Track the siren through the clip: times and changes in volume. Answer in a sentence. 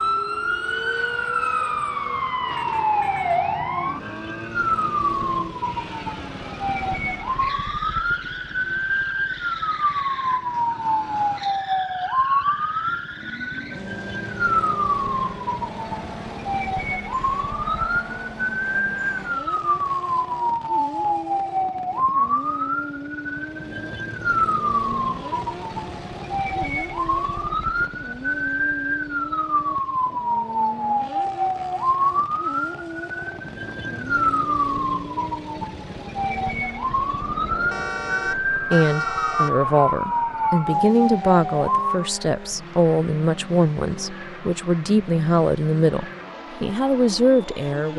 The siren can be heard from 0.0 to 42.1 s, at a steady volume.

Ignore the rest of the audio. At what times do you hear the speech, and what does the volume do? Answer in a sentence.
The speech can be heard from 38.5 to 47.9 s, at a steady volume.